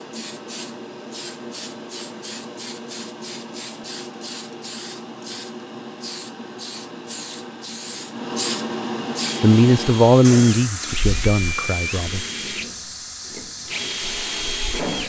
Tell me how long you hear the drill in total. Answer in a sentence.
The drill can be heard for 6 seconds in total.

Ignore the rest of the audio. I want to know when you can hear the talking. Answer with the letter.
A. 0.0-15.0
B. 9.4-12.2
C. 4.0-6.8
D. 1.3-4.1
B.